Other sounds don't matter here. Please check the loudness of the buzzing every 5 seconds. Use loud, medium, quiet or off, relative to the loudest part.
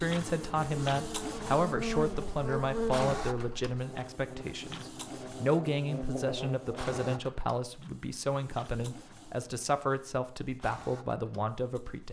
loud, loud, off.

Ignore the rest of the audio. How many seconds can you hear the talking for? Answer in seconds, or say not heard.
12 s.